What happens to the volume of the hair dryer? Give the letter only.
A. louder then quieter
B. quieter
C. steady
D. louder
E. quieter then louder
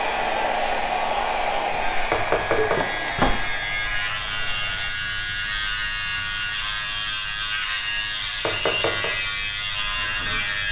B.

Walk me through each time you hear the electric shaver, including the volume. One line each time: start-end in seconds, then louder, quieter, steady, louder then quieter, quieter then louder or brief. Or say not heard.
0.0-10.6 louder.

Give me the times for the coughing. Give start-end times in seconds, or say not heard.
2.5-3.5.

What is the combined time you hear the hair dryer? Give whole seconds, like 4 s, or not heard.
5 s.